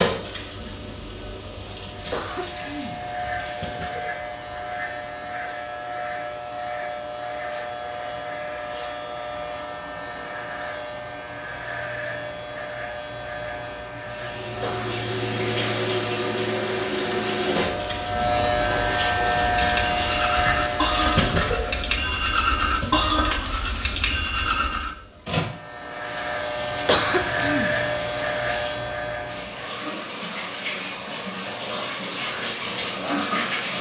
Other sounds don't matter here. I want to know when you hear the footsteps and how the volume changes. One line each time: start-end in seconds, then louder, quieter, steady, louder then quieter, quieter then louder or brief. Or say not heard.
not heard.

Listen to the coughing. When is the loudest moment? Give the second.
27 s.